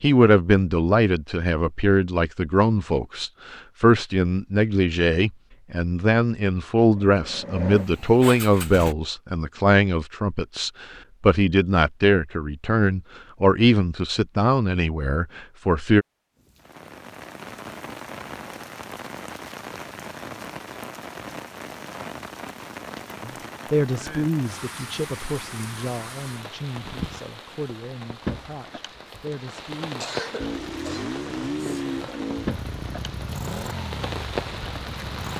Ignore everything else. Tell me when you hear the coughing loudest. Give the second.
30 s.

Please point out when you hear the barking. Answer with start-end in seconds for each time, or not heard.
not heard.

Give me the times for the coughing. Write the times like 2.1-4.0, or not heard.
30.0-31.9.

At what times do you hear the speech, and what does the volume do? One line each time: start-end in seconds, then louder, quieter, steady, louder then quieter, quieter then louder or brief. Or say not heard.
0.0-16.1 steady
23.2-30.1 quieter.